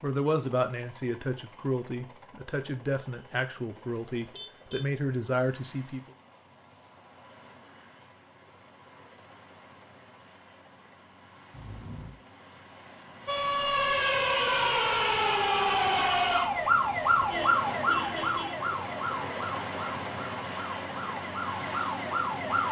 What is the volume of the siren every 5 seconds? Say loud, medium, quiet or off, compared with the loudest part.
off, off, loud, loud, medium.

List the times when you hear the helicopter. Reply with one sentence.
The helicopter can be heard from 0.0 to 22.6 s.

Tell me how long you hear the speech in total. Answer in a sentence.
The speech can be heard for 6 seconds in total.